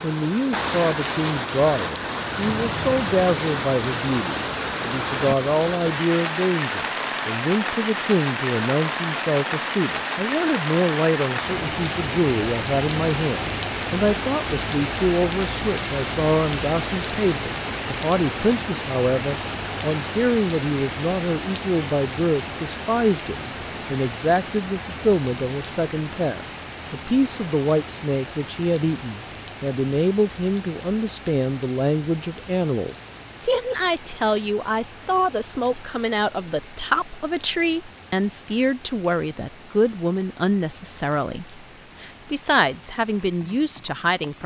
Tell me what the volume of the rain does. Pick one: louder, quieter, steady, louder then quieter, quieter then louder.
quieter.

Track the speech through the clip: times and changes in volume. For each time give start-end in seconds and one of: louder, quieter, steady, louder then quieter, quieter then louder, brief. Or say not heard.
0.0-44.4 steady.